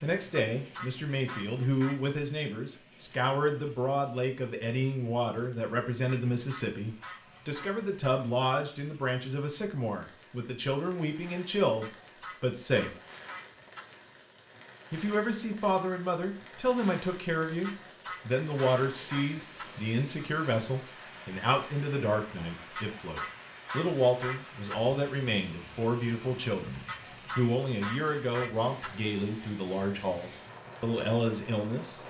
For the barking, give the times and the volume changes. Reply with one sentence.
The barking can't be heard in this clip.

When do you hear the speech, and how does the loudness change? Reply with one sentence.
You can hear the speech from 0.0 to 12.9 s, at a steady volume; and from 14.9 to 32.0 s, at a steady volume.